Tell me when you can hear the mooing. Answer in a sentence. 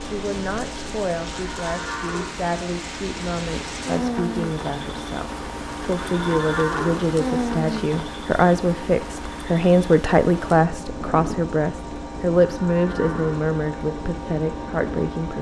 You can hear the mooing from 1.3 to 2.4 s, from 6.0 to 7.0 s and from 12.6 to 13.5 s.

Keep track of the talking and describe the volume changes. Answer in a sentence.
The volume of the talking goes up.